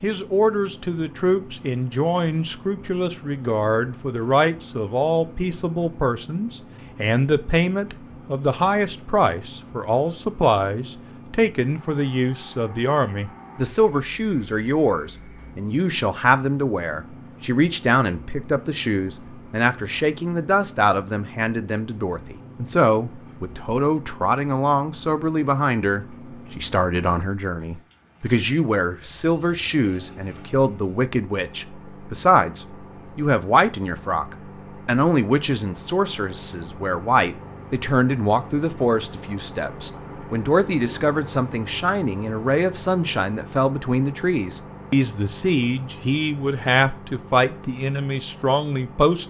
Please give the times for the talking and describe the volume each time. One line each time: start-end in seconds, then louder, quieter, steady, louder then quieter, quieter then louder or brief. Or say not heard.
0.0-49.2 steady.